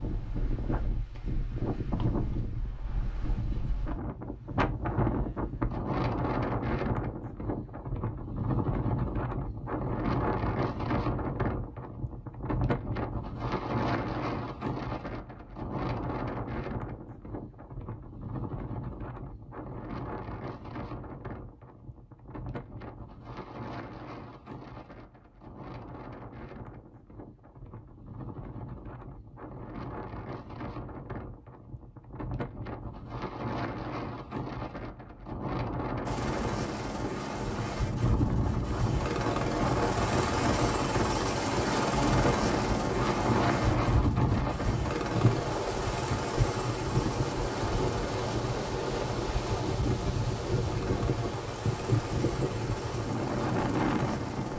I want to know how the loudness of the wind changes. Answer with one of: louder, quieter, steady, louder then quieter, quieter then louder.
quieter then louder.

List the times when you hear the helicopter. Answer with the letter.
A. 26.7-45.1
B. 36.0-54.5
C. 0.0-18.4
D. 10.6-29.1
B.